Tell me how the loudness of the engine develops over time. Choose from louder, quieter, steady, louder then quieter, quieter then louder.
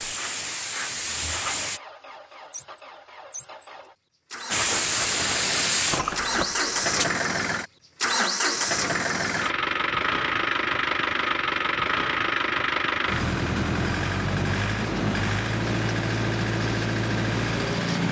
louder.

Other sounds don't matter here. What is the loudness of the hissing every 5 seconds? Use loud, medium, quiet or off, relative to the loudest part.
loud, loud, off, off.